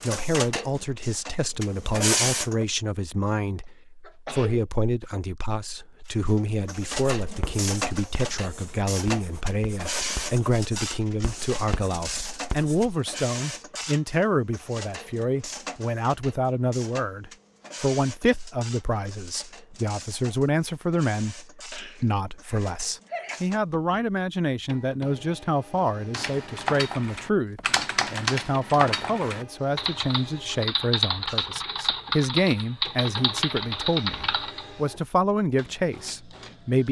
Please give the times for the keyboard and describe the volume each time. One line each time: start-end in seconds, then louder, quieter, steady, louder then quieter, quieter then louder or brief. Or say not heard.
26.1-34.8 steady.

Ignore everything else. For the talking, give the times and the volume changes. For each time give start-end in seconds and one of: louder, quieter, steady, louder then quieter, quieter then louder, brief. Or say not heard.
0.0-36.8 steady.